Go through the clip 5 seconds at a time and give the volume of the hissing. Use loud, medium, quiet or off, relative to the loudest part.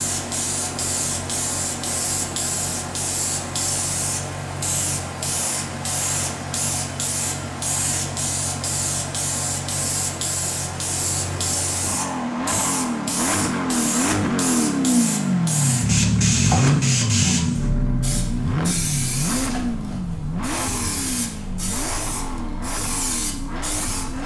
loud, loud, loud, loud, medium.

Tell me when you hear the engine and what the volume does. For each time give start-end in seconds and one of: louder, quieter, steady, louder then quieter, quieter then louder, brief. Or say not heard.
0.0-24.2 louder then quieter.